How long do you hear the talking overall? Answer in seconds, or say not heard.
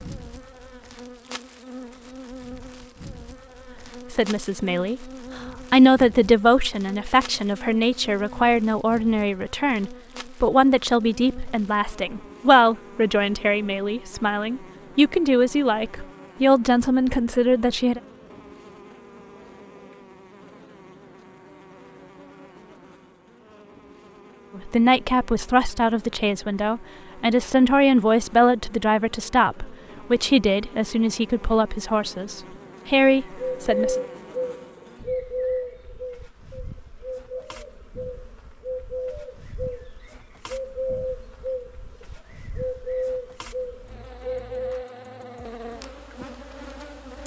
23 s.